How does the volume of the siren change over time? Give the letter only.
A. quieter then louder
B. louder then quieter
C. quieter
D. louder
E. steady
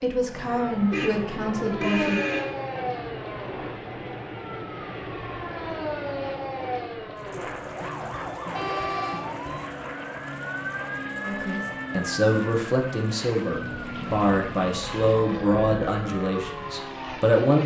E.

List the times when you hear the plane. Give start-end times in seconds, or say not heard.
0.1-17.6.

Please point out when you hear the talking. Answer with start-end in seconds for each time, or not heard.
0.0-2.2, 11.2-17.6.